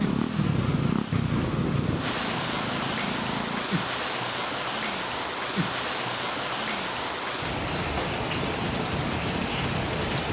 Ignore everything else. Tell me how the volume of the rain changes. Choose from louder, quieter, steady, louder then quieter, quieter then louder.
louder.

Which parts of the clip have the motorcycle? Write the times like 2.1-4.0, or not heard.
0.0-3.7, 8.4-10.2.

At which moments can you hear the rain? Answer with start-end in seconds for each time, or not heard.
0.0-10.2.